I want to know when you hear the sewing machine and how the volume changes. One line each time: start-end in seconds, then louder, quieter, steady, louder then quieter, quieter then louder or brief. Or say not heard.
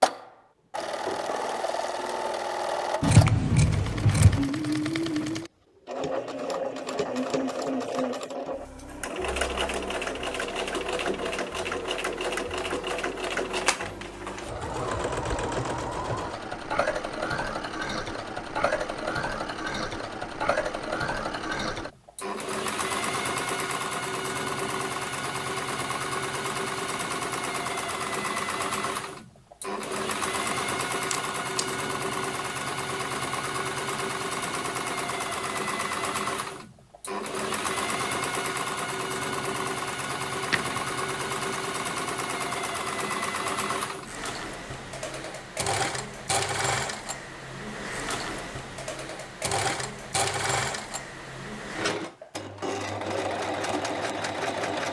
0.0-54.8 steady.